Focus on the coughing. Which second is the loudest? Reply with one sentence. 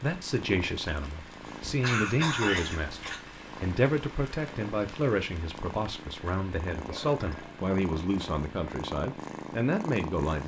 The loudest moment of the coughing is at 2 seconds.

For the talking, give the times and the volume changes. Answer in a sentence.
The talking can be heard from 0.0 to 10.4 s, at a steady volume.